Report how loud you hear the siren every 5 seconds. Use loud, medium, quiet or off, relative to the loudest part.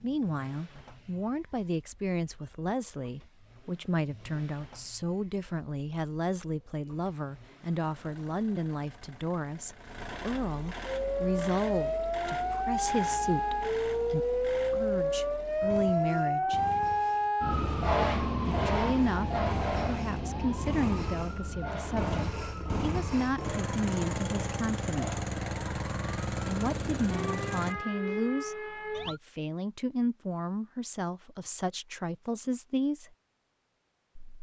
off, off, loud, loud, medium, medium, off.